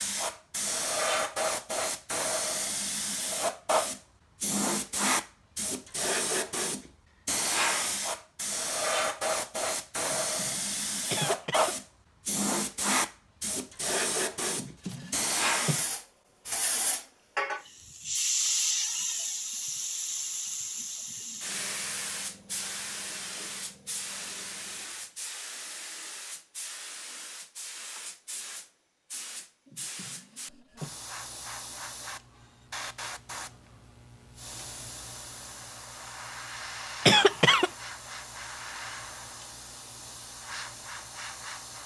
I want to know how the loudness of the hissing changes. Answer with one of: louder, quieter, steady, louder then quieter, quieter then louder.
quieter.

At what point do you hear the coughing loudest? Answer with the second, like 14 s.
37 s.